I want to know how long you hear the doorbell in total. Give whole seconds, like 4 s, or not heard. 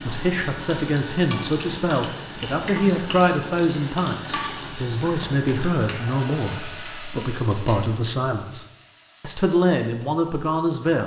2 s.